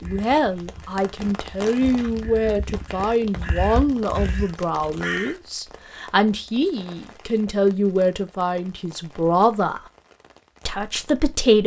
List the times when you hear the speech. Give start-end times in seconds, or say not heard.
0.0-9.8, 10.7-11.6.